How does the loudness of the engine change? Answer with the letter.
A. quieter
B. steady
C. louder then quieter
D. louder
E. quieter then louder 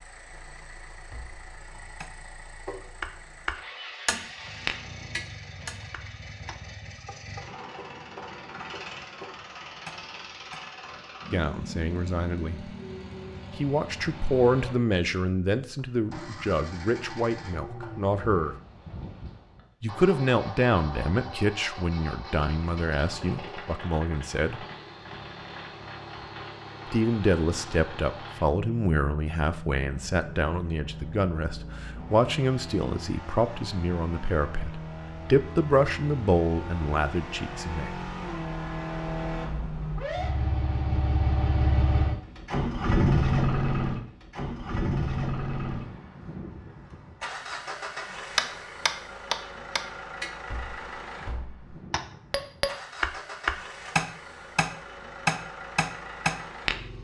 C.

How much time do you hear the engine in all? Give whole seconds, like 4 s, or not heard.
57 s.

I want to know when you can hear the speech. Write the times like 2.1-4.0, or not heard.
11.3-12.8, 13.6-18.6, 19.8-24.6, 26.9-38.0.